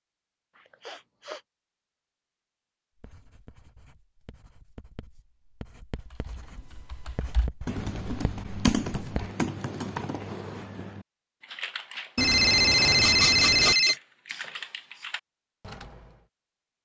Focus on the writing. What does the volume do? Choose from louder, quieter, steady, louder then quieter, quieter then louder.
louder.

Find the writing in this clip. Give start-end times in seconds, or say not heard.
3.0-9.3.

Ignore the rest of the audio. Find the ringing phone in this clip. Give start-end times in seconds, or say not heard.
12.2-13.9.